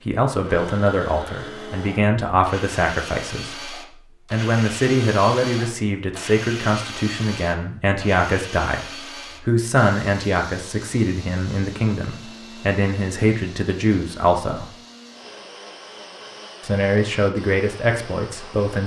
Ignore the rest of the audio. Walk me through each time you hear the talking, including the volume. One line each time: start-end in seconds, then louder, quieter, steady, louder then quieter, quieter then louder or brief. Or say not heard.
0.0-14.7 steady
16.6-18.8 brief.